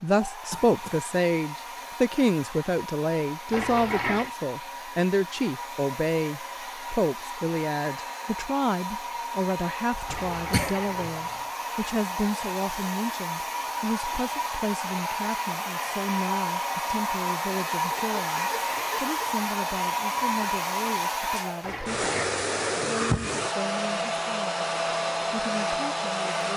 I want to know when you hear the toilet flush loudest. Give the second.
4 s.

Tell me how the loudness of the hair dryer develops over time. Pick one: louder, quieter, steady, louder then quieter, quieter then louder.
louder.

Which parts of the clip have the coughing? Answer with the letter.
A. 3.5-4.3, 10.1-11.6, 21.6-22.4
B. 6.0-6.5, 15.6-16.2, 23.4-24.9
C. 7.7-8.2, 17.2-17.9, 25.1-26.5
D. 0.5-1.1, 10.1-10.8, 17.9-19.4
D.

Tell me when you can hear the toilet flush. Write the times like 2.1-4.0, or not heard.
3.5-4.3, 10.1-11.6, 21.6-22.4.